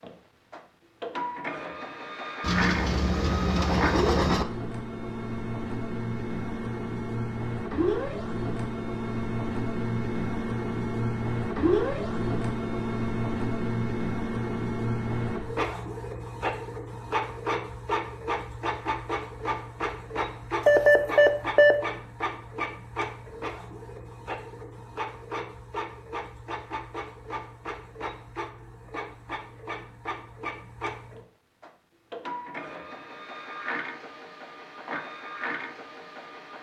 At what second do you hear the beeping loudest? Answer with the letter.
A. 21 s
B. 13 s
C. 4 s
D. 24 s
A.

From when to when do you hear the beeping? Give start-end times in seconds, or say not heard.
2.4-4.5, 20.6-21.8.